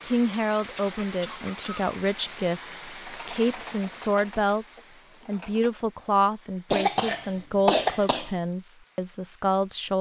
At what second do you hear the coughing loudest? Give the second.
7 s.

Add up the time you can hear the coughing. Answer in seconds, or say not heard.
3 s.